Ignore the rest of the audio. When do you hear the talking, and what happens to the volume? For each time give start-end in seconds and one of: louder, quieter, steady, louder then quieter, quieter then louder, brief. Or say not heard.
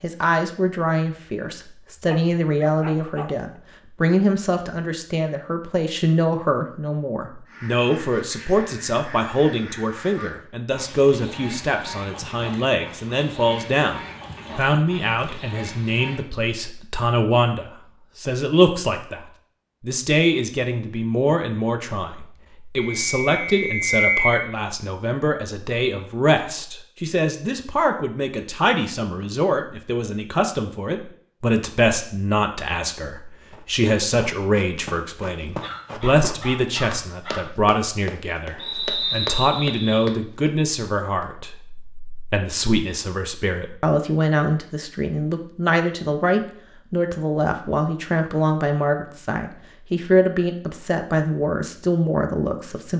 0.0-52.9 steady.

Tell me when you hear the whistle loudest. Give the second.
24 s.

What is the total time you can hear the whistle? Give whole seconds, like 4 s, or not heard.
3 s.